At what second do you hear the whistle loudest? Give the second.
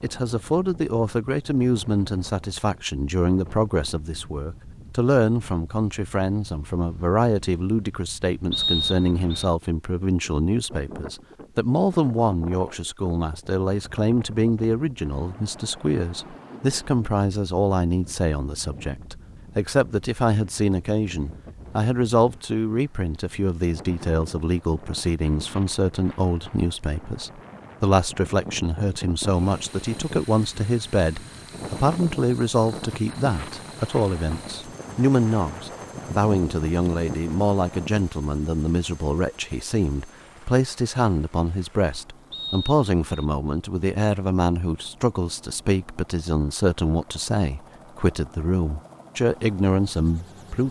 9 s.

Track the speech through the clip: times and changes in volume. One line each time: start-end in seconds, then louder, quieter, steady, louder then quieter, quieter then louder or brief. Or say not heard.
0.0-50.6 steady.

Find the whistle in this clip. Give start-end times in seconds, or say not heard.
8.5-9.4, 42.3-43.2.